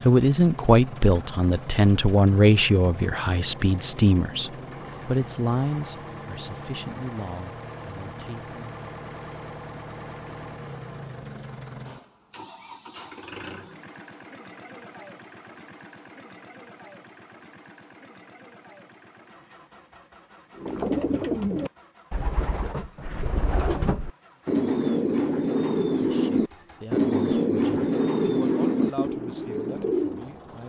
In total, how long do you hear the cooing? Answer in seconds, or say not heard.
10 s.